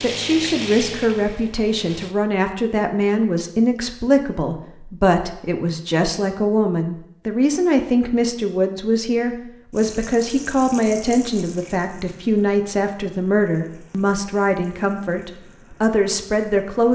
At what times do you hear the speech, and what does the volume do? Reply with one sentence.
The speech can be heard from 0.0 to 16.9 s, at a steady volume.